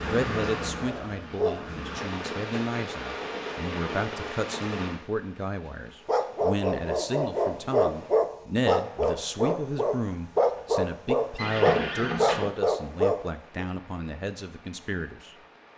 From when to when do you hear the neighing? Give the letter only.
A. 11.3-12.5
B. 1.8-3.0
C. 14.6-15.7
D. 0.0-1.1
A.